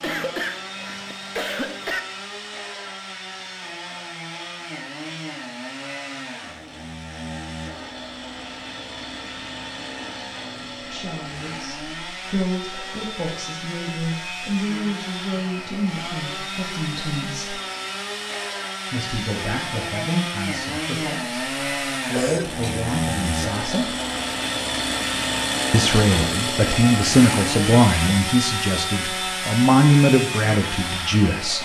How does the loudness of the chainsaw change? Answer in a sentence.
The loudness of the chainsaw goes up.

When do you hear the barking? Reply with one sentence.
You can't hear the barking here.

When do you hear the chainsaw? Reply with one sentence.
You can hear the chainsaw from 0.0 to 31.6 s.